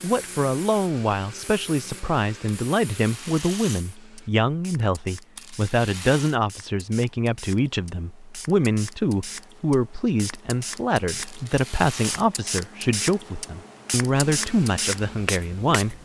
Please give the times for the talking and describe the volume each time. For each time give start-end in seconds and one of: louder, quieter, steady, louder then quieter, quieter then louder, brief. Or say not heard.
0.0-16.0 steady.